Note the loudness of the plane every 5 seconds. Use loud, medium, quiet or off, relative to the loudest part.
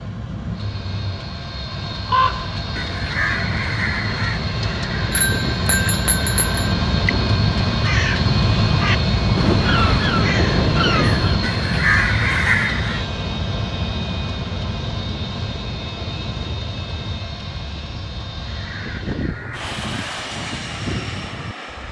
medium, loud, loud, medium, medium.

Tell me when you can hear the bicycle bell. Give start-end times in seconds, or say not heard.
5.1-6.8.